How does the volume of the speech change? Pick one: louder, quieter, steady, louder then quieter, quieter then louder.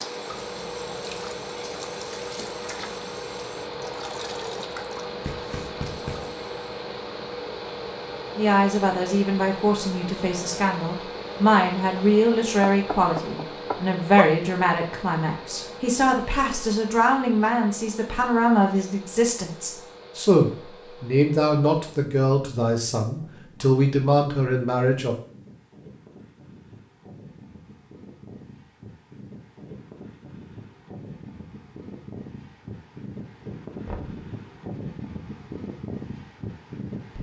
steady.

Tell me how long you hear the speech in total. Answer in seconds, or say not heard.
17 s.